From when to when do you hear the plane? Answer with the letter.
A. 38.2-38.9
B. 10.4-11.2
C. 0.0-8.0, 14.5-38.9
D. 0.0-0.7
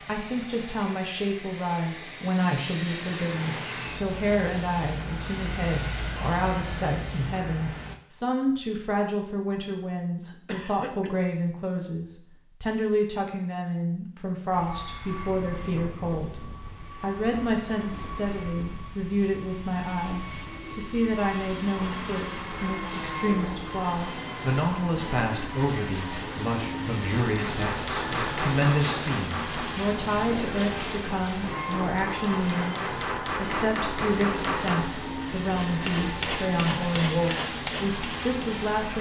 C.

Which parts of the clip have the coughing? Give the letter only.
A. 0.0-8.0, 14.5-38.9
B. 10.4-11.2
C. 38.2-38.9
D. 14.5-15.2
B.